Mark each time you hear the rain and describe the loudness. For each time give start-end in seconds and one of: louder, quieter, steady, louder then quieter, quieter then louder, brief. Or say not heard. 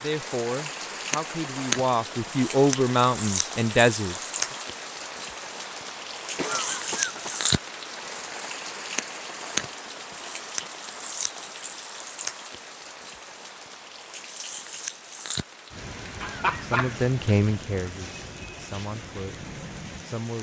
0.0-20.3 quieter.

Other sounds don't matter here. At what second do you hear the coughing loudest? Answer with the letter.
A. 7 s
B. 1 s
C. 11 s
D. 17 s
D.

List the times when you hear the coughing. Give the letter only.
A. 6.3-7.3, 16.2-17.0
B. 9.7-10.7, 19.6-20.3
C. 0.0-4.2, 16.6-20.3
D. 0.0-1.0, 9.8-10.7
A.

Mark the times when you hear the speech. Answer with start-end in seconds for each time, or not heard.
0.0-4.2, 16.6-20.3.